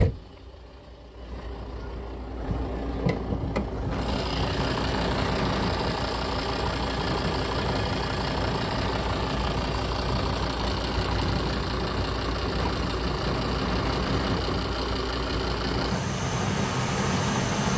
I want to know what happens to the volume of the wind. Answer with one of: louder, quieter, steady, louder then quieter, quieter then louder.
steady.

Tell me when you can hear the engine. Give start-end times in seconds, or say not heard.
0.0-17.7.